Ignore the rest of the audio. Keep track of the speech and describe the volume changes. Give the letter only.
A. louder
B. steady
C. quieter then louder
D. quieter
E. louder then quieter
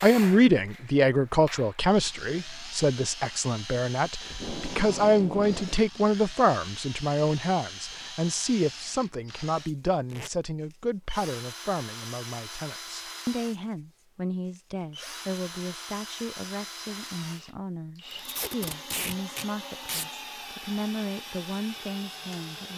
D.